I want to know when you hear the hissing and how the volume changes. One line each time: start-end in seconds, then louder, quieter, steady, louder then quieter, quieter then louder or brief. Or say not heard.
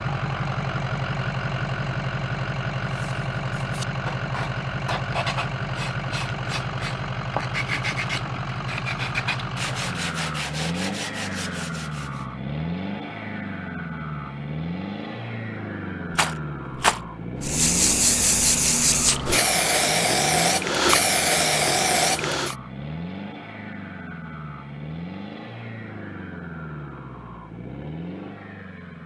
17.4-22.6 steady.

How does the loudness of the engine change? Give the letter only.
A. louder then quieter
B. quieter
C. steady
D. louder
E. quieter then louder
B.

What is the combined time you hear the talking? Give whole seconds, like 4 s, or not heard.
not heard.